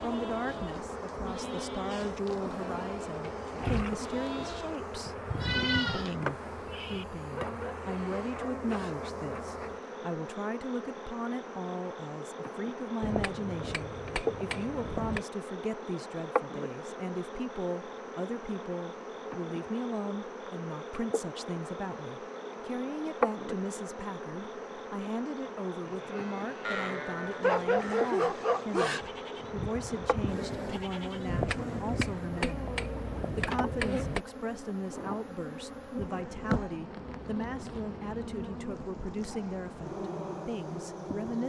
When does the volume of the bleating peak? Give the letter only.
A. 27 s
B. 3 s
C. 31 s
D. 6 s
D.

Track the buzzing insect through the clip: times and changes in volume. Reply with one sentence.
You can hear the buzzing insect from 0.0 to 41.4 s, at a steady volume.